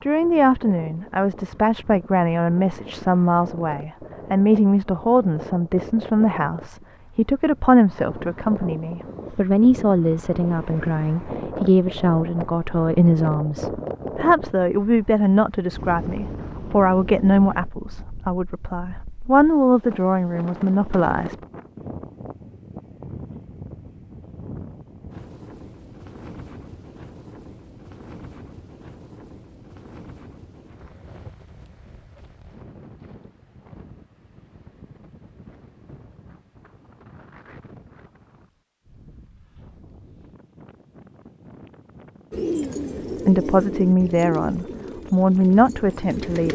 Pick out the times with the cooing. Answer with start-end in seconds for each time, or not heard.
42.3-46.5.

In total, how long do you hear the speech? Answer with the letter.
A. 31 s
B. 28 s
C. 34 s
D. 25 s
D.